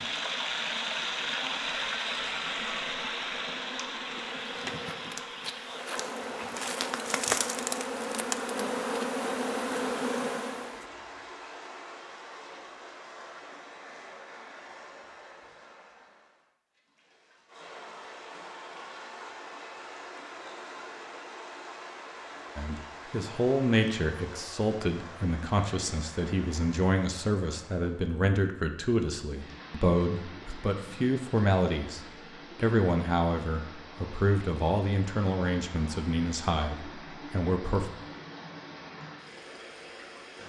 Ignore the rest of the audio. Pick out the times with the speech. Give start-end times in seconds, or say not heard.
22.6-37.9.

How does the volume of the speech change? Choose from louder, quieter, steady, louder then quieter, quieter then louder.
steady.